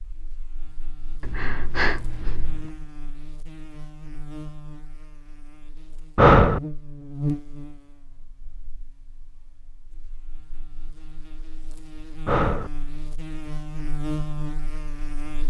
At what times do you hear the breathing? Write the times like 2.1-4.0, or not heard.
1.2-2.7, 6.2-6.6, 12.2-12.7.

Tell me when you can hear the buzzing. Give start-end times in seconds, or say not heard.
0.0-15.4.